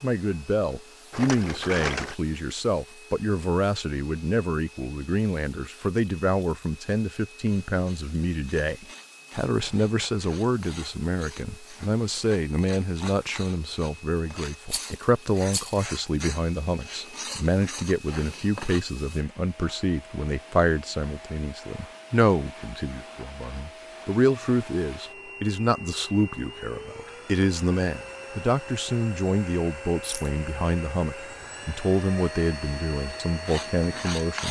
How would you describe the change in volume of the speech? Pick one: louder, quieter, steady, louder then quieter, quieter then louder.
steady.